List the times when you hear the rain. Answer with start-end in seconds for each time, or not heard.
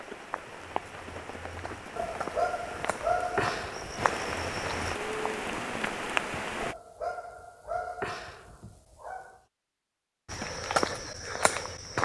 0.0-6.8.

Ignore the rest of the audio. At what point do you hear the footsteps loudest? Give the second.
11 s.